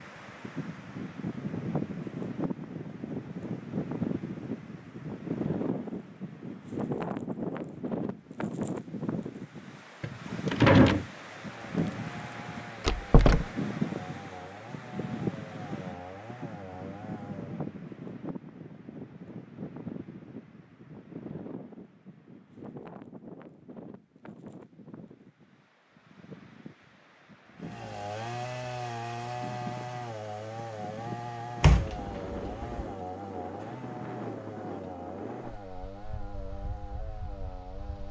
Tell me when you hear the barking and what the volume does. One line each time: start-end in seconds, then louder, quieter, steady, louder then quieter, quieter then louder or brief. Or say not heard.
not heard.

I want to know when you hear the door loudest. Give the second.
11 s.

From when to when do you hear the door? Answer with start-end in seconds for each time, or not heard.
10.0-11.1, 12.8-13.4, 31.6-32.9.